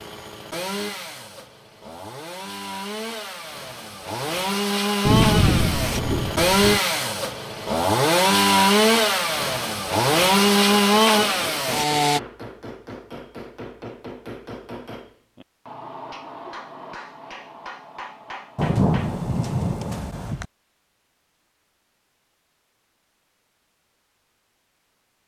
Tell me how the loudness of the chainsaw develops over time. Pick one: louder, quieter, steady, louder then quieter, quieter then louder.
louder.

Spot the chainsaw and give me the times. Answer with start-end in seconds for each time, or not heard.
0.0-12.2.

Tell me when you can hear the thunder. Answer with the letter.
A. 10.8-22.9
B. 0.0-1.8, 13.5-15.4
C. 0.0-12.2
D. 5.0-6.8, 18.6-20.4
D.